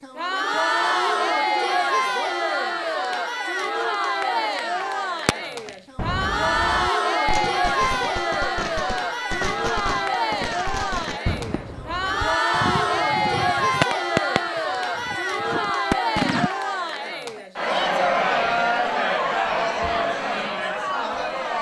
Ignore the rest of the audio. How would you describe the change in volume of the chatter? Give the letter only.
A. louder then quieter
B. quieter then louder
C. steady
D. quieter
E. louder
C.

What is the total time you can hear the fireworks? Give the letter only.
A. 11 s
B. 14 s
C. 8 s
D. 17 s
A.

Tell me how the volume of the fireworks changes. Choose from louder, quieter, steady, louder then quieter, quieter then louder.
louder.